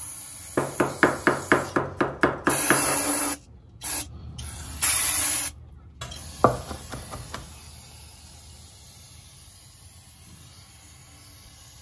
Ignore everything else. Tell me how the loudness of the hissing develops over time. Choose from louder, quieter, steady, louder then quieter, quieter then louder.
louder then quieter.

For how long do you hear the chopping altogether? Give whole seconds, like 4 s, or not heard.
4 s.